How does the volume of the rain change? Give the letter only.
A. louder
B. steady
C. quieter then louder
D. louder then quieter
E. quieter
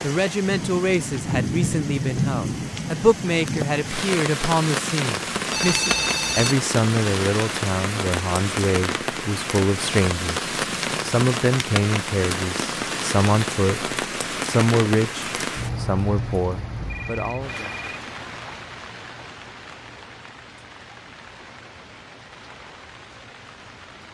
E.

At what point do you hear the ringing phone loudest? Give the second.
6 s.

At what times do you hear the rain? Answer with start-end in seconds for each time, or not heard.
0.0-24.1.